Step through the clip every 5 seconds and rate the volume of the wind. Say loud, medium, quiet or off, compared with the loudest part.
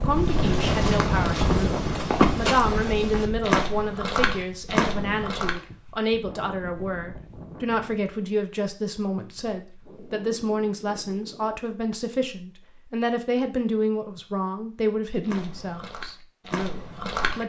loud, quiet, quiet, off.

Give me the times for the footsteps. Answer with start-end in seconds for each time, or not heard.
0.1-5.6, 15.2-17.4.